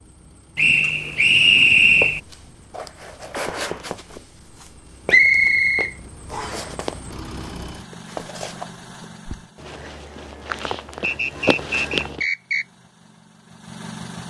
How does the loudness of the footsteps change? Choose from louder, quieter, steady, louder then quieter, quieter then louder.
quieter then louder.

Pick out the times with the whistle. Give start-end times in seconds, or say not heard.
0.6-2.2, 5.0-6.7, 11.0-12.7.